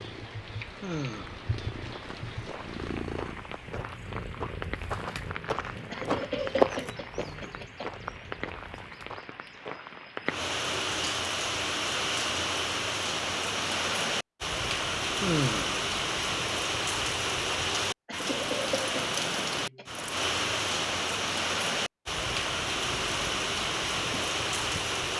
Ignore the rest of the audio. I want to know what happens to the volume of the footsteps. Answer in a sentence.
The loudness of the footsteps goes up, then down.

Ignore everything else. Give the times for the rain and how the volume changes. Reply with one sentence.
The rain can be heard from 0.0 to 25.1 s, getting louder.